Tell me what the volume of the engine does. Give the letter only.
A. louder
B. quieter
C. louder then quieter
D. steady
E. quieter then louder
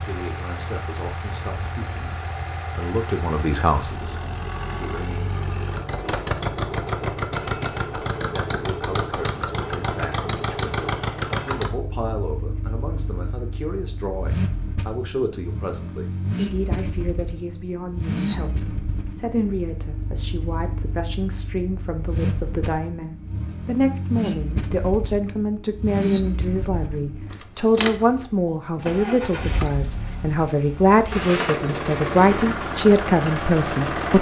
D.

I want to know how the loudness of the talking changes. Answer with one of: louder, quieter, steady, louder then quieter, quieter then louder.
louder.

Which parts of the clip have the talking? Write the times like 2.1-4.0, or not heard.
0.0-5.3, 8.2-34.1.